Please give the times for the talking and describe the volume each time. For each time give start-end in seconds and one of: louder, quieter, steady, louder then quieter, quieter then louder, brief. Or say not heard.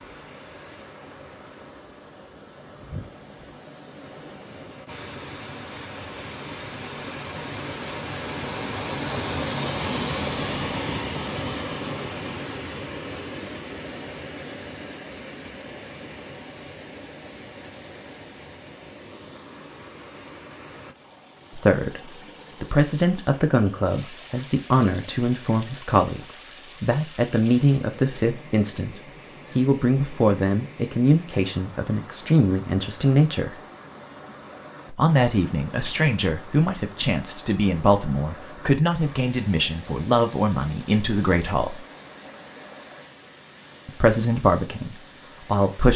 21.5-33.6 steady
34.9-41.9 steady
43.9-45.9 brief.